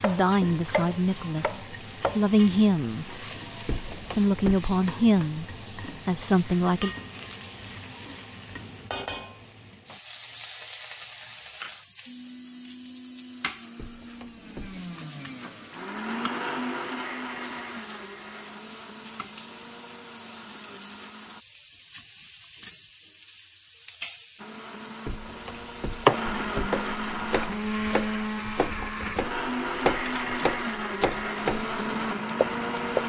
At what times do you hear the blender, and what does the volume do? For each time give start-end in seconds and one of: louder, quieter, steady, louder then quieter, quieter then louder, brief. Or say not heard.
12.1-21.4 louder then quieter
24.4-33.0 louder.